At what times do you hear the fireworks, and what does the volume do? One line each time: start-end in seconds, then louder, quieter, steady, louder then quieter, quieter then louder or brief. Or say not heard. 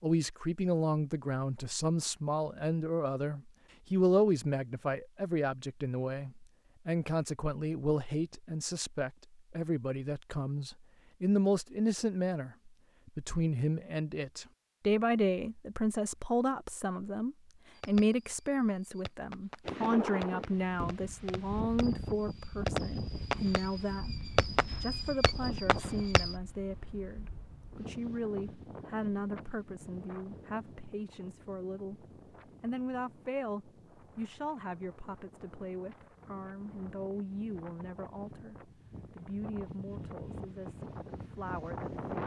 17.8-26.4 louder.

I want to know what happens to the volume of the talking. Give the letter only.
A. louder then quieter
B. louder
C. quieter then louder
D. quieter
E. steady
D.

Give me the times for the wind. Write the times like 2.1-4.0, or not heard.
19.6-42.2.